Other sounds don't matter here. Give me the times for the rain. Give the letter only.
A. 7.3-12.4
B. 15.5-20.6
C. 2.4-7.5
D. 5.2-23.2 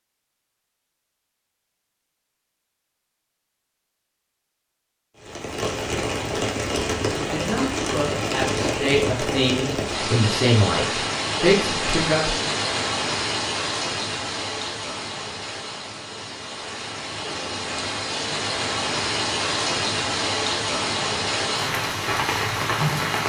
D.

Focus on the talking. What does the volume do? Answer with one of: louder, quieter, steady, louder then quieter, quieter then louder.
louder.